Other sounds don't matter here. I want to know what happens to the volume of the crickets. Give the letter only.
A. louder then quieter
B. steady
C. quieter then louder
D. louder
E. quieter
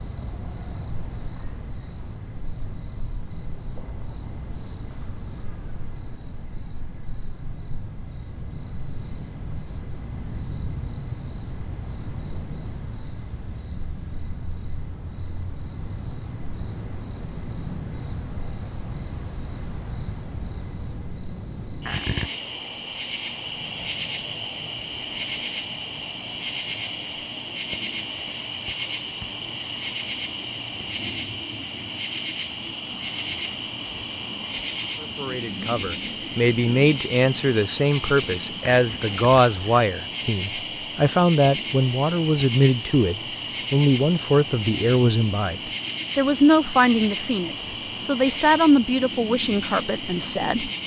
D.